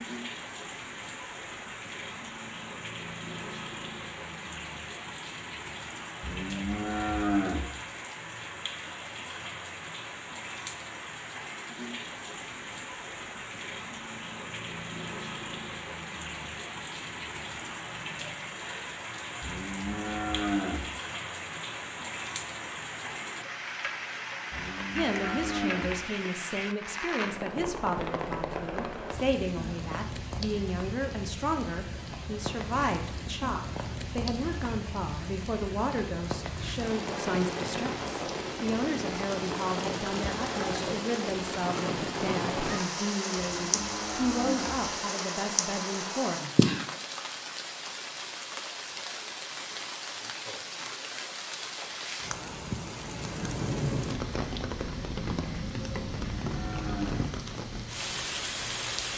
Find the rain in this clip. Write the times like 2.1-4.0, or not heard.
0.0-59.1.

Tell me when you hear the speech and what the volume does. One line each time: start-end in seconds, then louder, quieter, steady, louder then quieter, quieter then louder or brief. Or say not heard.
24.9-46.4 steady.